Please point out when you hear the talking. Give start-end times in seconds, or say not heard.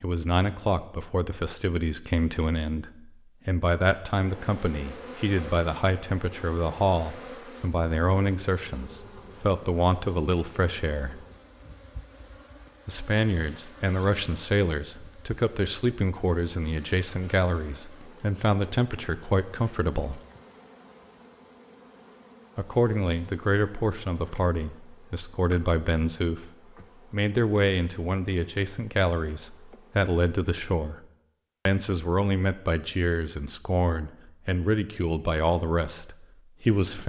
0.0-11.2, 12.8-20.2, 22.6-26.5, 27.1-31.1, 31.6-37.0.